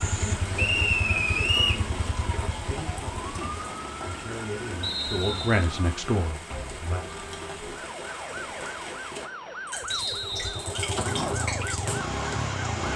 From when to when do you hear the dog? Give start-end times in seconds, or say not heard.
not heard.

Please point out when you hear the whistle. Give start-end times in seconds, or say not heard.
0.6-1.9, 4.8-5.7, 9.9-10.8.